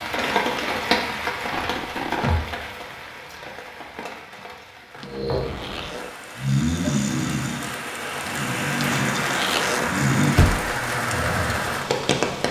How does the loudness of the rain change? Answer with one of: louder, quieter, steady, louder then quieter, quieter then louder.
quieter then louder.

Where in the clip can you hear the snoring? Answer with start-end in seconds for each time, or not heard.
5.0-11.8.